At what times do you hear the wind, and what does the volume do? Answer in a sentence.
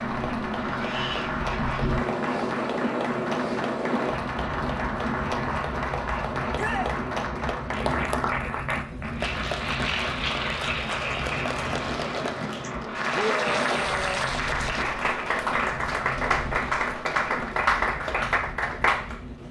You can hear the wind from 0.0 to 19.4 s, getting quieter.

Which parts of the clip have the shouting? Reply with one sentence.
The shouting can be heard from 6.5 to 7.0 s and from 13.2 to 14.4 s.